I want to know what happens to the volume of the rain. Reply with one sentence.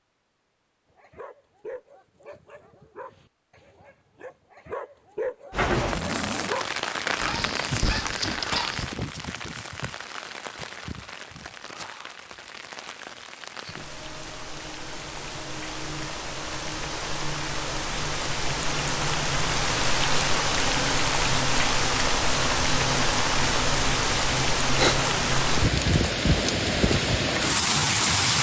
The volume of the rain goes down, then up.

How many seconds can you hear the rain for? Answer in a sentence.
You can hear the rain for 23 seconds altogether.